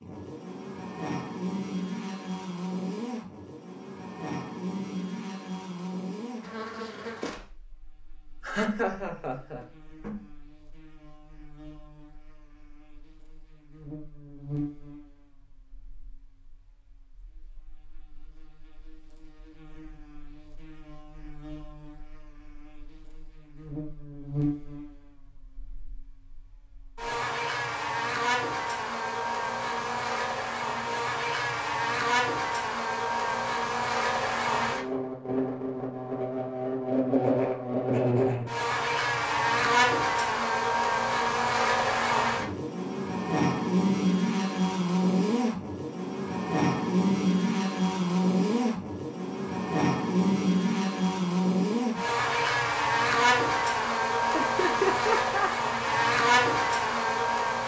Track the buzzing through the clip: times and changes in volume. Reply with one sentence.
The buzzing can be heard from 0.0 to 57.6 s, getting quieter then louder.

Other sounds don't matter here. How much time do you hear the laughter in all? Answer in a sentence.
You can hear the laughter for 3 seconds altogether.